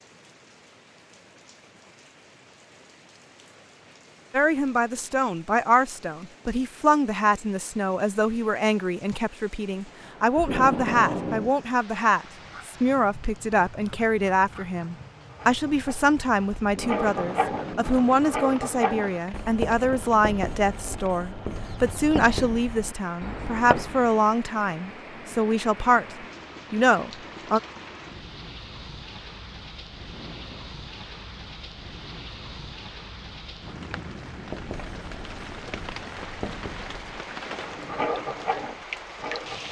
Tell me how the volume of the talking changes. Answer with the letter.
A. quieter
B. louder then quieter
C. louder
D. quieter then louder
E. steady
E.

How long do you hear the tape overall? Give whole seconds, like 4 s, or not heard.
3 s.